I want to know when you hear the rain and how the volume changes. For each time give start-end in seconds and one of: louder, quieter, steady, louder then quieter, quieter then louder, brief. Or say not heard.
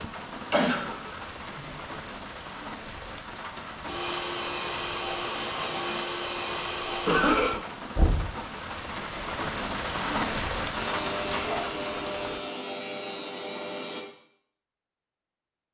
0.0-12.4 louder.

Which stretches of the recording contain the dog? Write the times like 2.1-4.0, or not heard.
not heard.